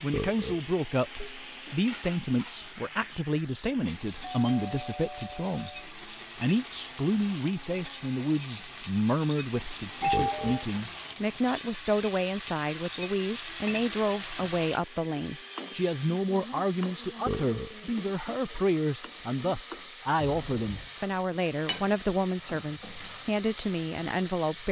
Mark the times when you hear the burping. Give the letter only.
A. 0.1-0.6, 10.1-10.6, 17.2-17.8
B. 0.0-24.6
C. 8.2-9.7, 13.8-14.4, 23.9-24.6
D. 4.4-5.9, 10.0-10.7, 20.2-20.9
A.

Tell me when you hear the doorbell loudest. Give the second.
10 s.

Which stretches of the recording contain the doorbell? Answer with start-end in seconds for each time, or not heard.
4.4-5.9, 10.0-10.7, 20.2-20.9.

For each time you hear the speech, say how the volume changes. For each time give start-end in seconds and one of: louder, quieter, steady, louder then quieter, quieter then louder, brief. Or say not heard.
0.0-24.6 steady.